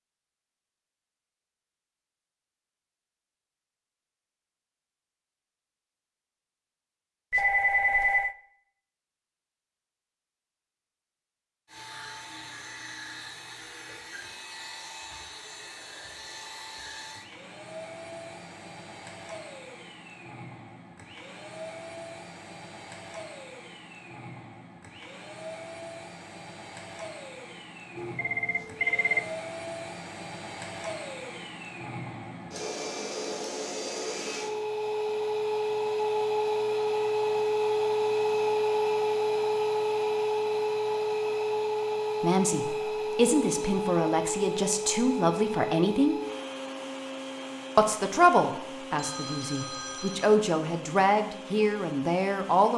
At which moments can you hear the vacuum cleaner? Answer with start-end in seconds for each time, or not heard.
11.7-52.7.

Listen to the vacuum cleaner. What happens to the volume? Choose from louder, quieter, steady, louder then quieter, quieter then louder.
louder then quieter.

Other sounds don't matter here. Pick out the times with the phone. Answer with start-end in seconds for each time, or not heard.
7.3-8.3, 27.9-29.3, 49.0-50.5.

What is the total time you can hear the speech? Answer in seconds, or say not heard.
9 s.